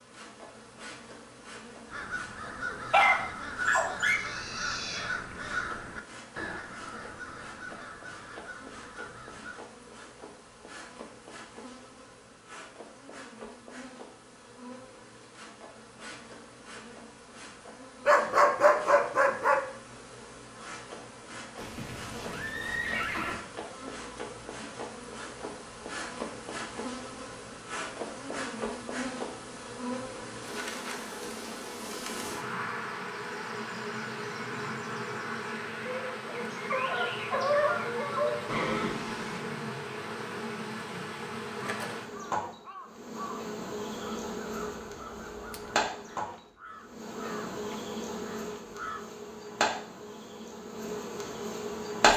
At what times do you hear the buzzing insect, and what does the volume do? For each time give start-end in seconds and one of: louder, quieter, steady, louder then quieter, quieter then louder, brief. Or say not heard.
0.0-52.1 louder.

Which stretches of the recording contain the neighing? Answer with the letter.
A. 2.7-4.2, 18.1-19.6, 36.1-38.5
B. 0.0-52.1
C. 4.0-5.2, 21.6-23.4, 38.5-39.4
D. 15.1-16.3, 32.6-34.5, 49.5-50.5
C.